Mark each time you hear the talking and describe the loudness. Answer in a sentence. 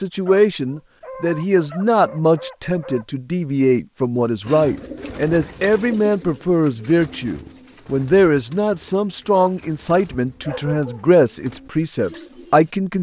The talking can be heard from 0.0 to 12.9 s, at a steady volume.